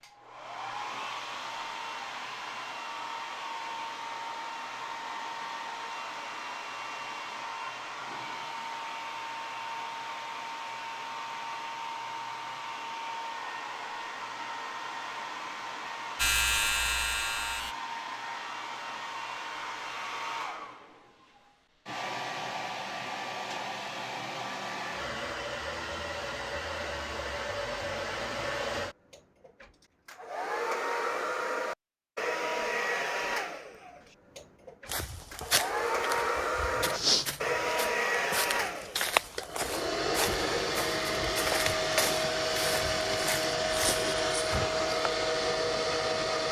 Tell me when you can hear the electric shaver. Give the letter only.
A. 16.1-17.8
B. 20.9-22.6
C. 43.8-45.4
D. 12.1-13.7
A.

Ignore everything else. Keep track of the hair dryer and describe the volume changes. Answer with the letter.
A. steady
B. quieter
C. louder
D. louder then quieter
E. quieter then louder
C.